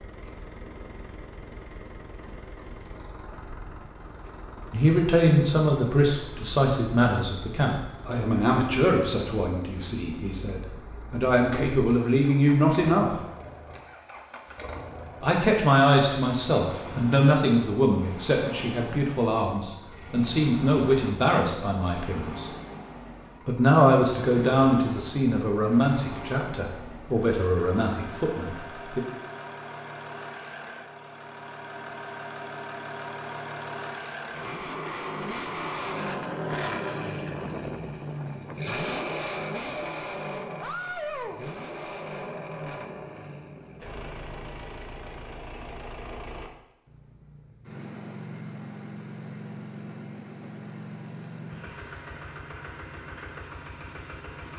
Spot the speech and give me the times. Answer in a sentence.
The speech can be heard from 4.7 to 13.2 s, from 15.2 to 22.5 s and from 23.4 to 29.0 s.